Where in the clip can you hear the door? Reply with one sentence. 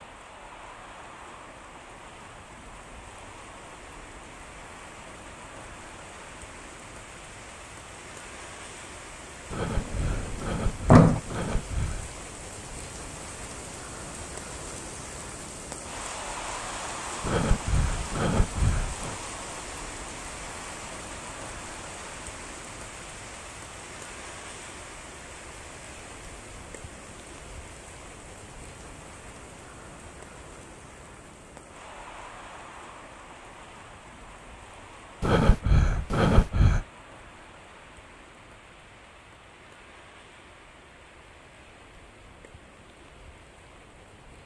You can hear the door from 9.7 to 11.2 s.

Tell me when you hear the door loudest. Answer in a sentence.
The loudest moment of the door is at 11 seconds.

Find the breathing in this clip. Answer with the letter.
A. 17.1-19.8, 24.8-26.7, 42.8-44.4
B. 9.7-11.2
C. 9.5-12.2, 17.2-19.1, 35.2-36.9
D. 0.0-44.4
C.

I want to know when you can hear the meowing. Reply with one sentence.
You can't hear the meowing here.